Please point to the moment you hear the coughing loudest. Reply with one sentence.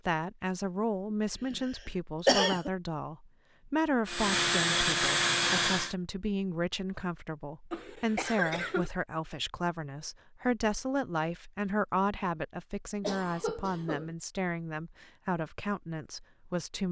The loudest moment of the coughing is at 2 seconds.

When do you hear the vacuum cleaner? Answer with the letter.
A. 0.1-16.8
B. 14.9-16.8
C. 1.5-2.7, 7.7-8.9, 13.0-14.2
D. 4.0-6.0
D.